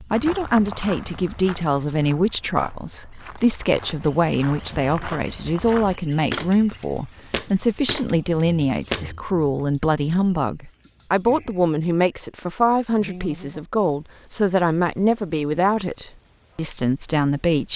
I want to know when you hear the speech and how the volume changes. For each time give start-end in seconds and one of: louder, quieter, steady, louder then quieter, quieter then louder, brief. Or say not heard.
0.0-17.7 steady.